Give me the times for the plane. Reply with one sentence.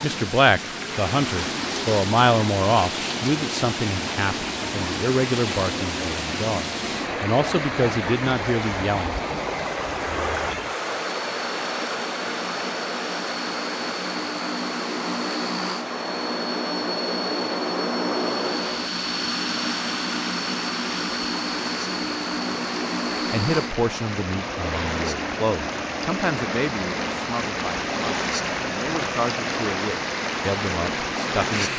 The plane can be heard from 10.9 to 31.7 s.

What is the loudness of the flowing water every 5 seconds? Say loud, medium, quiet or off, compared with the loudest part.
loud, loud, loud, medium, medium, loud, loud.